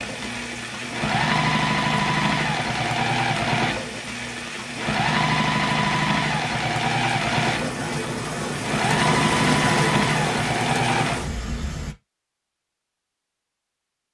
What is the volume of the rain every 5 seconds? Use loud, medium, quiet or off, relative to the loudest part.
medium, loud, loud.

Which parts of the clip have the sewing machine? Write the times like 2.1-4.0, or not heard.
0.0-11.2.